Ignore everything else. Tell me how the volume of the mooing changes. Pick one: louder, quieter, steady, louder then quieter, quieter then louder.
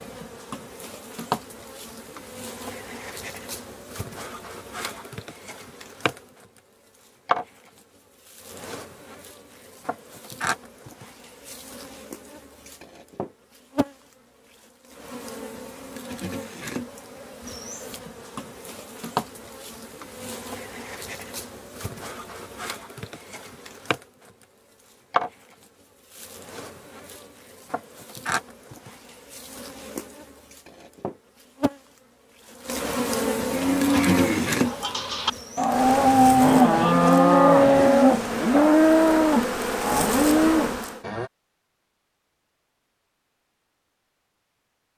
louder then quieter.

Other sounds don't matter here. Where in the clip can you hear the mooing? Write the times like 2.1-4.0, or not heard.
33.5-41.3.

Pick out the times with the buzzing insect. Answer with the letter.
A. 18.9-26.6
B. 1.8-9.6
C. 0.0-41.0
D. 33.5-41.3
C.